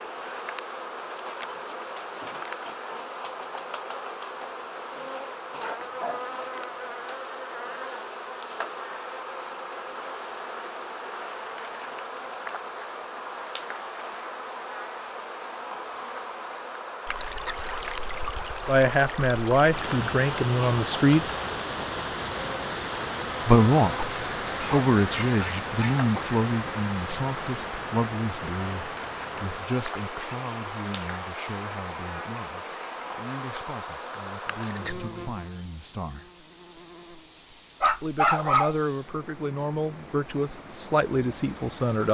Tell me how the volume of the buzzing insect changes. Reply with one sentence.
The volume of the buzzing insect stays about the same.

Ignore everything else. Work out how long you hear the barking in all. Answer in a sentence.
You can hear the barking for 4 seconds altogether.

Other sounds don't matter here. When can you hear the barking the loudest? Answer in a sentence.
The loudest moment of the barking is at 38 seconds.